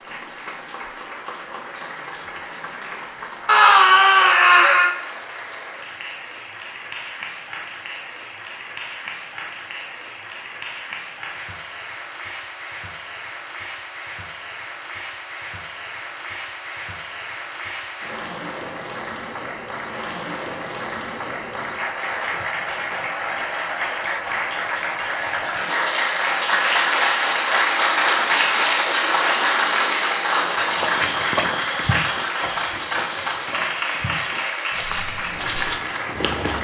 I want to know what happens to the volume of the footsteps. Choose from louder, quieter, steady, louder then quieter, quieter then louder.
quieter then louder.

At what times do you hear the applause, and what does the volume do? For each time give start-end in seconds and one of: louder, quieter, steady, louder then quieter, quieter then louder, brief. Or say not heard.
0.0-36.5 louder.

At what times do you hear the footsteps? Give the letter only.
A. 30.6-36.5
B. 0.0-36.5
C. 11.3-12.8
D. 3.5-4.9
A.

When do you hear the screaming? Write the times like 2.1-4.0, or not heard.
3.5-4.9.